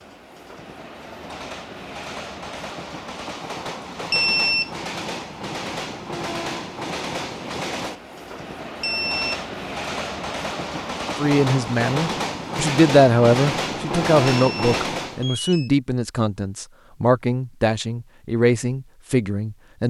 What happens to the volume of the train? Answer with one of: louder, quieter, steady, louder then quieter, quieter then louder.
louder.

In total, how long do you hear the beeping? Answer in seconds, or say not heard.
3 s.